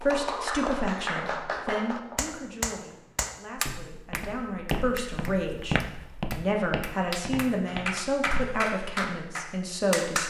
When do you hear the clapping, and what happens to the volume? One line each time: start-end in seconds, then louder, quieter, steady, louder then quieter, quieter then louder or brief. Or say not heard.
0.0-10.2 quieter then louder.